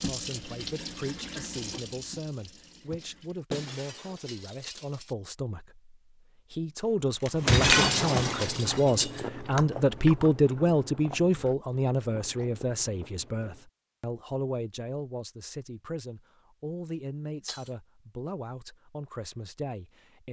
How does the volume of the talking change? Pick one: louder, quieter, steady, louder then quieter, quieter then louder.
louder then quieter.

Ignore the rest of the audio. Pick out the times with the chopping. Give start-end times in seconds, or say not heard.
7.1-8.4.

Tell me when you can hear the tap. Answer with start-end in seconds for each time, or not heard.
0.0-3.5.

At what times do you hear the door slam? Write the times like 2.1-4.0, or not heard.
not heard.